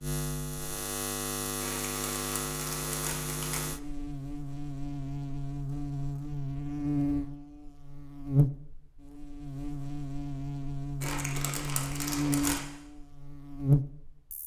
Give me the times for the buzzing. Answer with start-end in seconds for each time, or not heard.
0.0-14.4.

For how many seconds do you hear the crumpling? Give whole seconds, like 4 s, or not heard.
4 s.